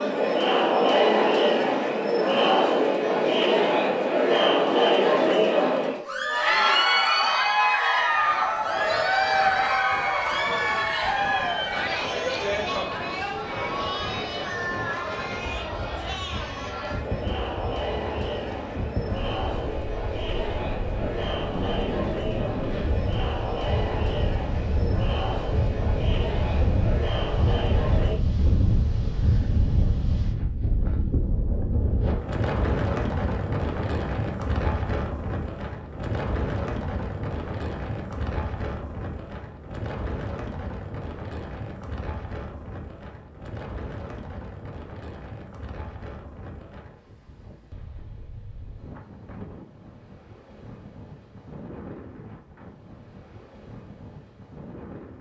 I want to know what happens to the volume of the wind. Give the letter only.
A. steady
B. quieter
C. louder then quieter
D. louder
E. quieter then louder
C.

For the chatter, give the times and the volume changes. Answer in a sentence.
The chatter can be heard from 0.0 to 28.1 s, getting quieter.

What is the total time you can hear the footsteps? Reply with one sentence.
You can't hear the footsteps here.